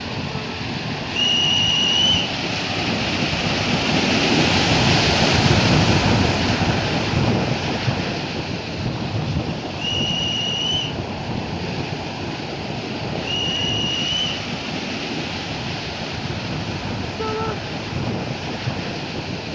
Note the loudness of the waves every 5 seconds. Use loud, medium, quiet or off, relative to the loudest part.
loud, loud, medium, medium.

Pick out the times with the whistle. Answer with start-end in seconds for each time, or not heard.
1.1-2.4, 9.8-10.9, 13.2-14.3.